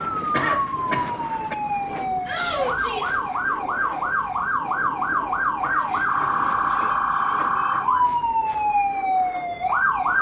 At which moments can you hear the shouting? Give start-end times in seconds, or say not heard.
2.2-3.2, 5.8-7.8.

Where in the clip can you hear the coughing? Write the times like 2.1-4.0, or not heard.
0.3-1.6, 5.6-8.0.